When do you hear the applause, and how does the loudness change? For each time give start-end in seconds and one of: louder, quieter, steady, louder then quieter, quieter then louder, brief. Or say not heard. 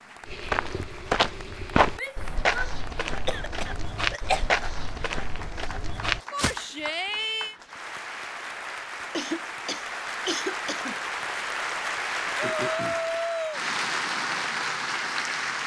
0.0-15.6 louder.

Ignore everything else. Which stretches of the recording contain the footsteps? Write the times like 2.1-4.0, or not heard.
0.2-6.6.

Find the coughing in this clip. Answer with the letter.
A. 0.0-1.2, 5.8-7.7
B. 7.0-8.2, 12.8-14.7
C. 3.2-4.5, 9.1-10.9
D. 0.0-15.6
C.